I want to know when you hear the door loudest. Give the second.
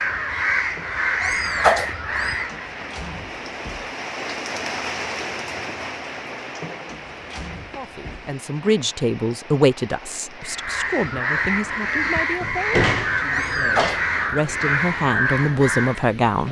13 s.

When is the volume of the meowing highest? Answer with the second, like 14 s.
2 s.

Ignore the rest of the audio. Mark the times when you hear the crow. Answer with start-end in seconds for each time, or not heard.
0.0-2.9, 10.4-16.1.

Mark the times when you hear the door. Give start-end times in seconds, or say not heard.
2.5-4.0, 6.8-8.3, 12.4-14.0.